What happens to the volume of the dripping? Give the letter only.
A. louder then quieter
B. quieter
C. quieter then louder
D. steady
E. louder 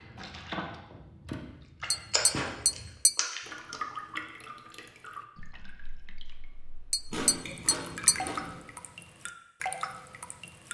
C.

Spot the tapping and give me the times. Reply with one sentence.
You can hear the tapping from 1.9 to 3.1 s and from 6.9 to 8.2 s.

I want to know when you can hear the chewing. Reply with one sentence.
You can hear the chewing from 2.1 to 3.8 s and from 7.1 to 8.6 s.